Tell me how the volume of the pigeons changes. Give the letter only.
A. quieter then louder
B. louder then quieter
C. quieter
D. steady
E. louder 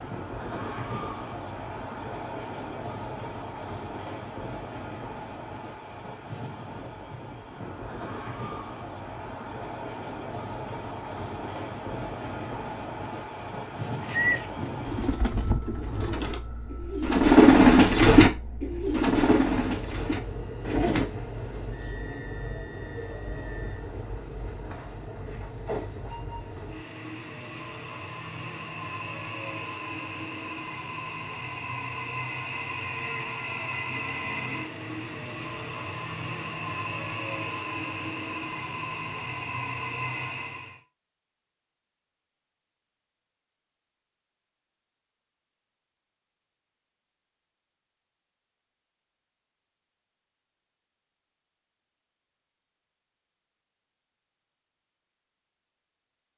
B.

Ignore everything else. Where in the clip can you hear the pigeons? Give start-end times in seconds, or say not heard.
14.0-21.1.